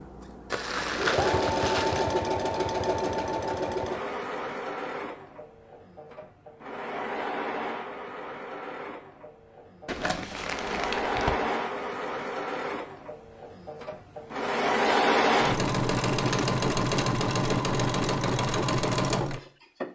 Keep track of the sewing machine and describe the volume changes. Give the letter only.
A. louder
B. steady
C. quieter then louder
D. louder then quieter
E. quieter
C.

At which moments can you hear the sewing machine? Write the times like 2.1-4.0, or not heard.
0.0-19.9.